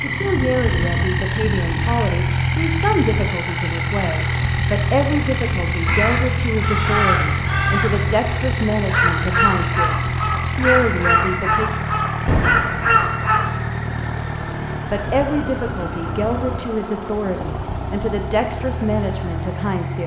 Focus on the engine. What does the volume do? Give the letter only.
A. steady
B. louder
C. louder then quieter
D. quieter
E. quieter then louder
D.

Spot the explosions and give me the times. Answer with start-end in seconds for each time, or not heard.
12.2-13.1.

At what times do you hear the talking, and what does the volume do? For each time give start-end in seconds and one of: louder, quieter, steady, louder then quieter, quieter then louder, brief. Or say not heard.
0.0-11.7 steady
14.8-20.0 steady.